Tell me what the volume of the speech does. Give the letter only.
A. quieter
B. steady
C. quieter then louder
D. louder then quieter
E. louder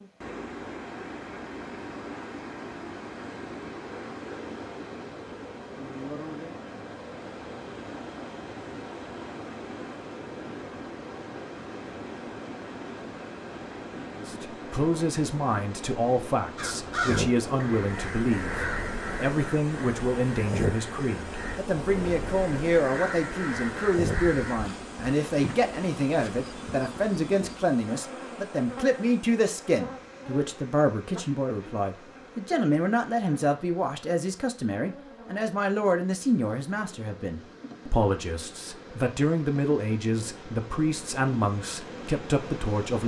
B.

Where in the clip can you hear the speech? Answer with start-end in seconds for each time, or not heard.
14.2-43.0.